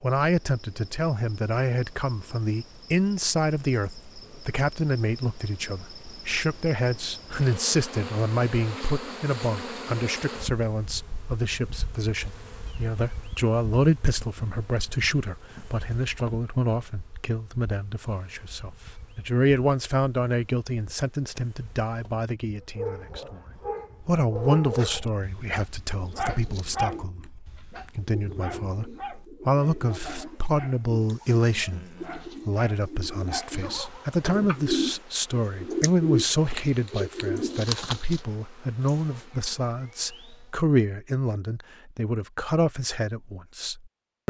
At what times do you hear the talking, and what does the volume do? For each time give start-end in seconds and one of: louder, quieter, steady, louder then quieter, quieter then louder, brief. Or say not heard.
0.0-23.4 steady
24.0-44.2 steady.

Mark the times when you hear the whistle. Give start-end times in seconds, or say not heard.
not heard.